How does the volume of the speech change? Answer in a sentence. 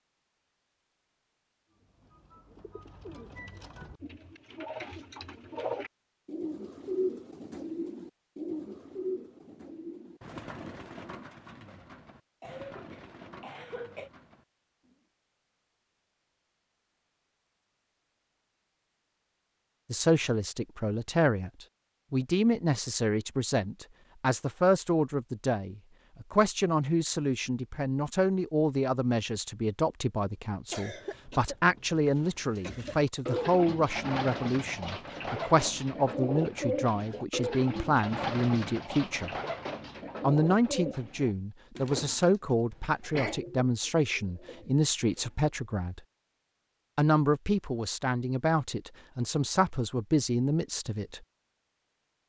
The loudness of the speech stays about the same.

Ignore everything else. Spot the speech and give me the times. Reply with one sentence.
The speech can be heard from 19.9 to 39.3 s, from 40.2 to 46.0 s and from 47.0 to 51.2 s.